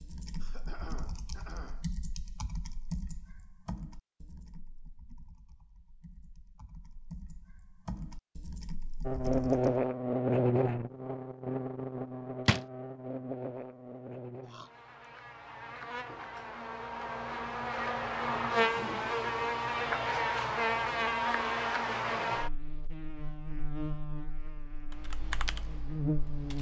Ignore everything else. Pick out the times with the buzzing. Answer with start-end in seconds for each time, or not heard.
9.1-26.5.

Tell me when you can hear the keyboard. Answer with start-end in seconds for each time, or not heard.
0.0-9.8, 24.9-26.5.